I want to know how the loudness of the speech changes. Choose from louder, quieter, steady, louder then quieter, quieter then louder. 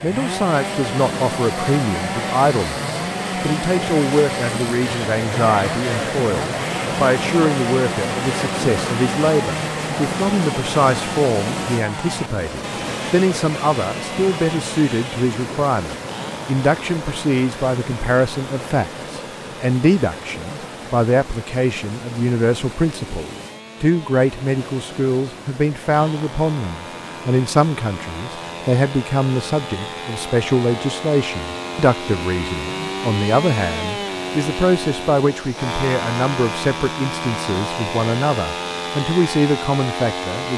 steady.